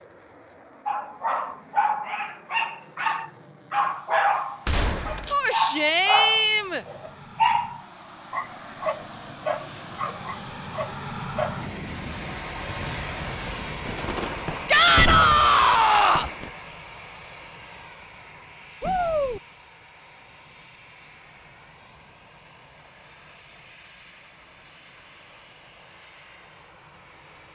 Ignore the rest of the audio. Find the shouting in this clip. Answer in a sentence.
You can hear the shouting from 5.3 to 6.8 s, from 14.7 to 16.3 s and from 18.8 to 19.4 s.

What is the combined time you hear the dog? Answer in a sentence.
You can hear the dog for 11 seconds altogether.